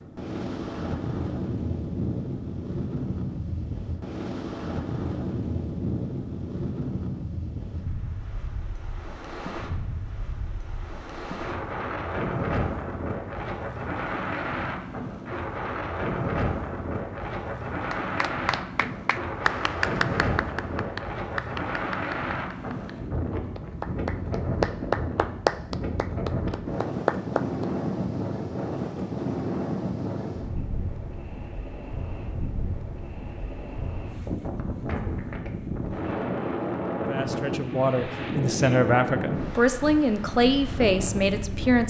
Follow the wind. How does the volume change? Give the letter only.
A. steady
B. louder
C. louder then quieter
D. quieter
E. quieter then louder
A.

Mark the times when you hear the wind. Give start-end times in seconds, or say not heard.
0.0-41.8.